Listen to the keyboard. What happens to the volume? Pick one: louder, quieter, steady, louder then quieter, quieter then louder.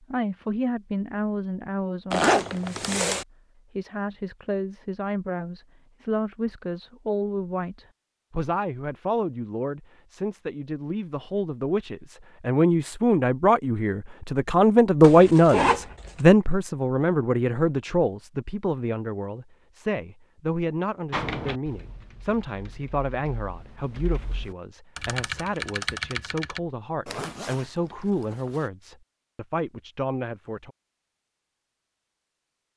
quieter then louder.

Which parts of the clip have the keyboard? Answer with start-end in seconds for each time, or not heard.
21.1-26.6.